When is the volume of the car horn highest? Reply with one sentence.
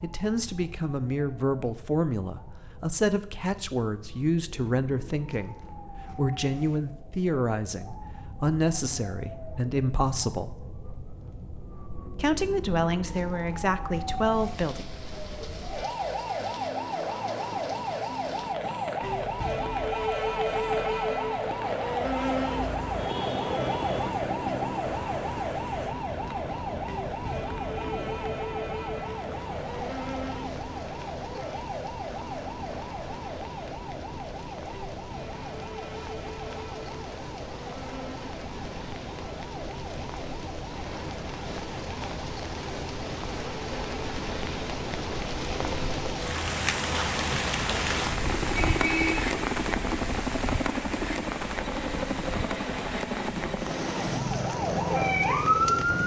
The loudest moment of the car horn is at 49 seconds.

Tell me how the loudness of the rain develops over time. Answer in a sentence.
The loudness of the rain goes up.